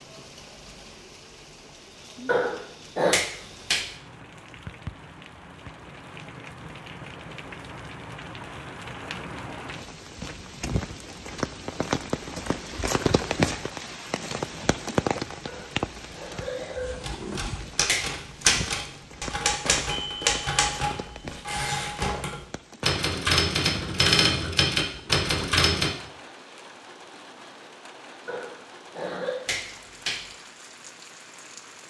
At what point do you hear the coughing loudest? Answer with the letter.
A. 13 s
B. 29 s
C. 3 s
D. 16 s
C.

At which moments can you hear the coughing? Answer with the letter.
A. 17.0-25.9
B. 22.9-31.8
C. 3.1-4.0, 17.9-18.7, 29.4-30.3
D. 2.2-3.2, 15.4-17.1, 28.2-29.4
D.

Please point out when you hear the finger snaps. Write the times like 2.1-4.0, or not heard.
3.1-4.0, 17.9-18.7, 29.4-30.3.